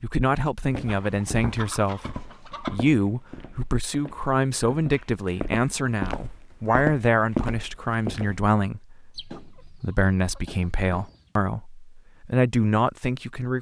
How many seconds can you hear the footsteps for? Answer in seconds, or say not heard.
8 s.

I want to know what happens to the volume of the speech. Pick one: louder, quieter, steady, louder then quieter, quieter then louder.
steady.